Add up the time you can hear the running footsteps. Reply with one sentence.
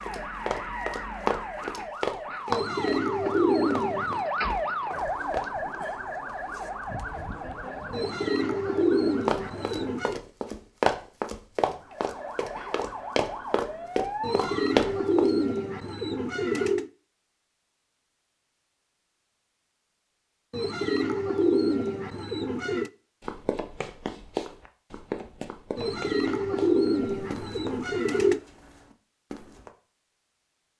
The running footsteps can be heard for 18 seconds in total.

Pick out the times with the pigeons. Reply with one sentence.
You can hear the pigeons from 2.5 to 4.2 s, from 7.9 to 10.2 s, from 14.2 to 16.9 s, from 20.5 to 22.9 s and from 25.8 to 28.4 s.